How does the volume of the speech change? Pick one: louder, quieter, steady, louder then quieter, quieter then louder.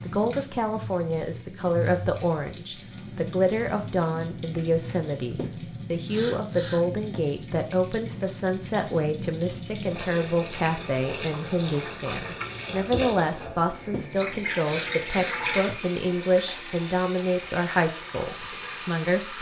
steady.